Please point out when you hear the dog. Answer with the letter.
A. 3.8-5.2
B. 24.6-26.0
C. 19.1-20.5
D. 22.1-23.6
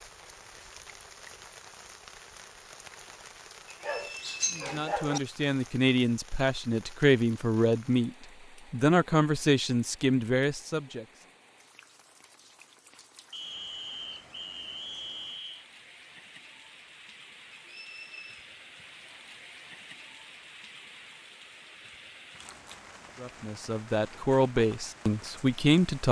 A.